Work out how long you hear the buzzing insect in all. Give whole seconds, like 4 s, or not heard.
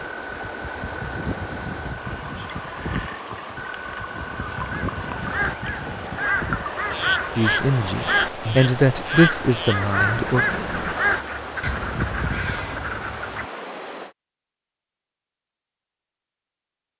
not heard.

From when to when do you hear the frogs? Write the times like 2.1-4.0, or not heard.
0.0-13.5.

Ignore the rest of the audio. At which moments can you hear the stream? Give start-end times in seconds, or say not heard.
0.0-14.2.